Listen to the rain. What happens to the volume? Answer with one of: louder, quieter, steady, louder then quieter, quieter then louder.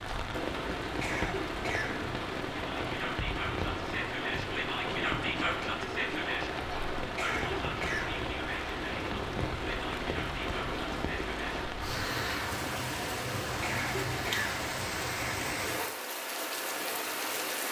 steady.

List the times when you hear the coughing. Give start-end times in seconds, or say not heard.
0.8-2.0, 7.0-8.2, 13.4-14.5.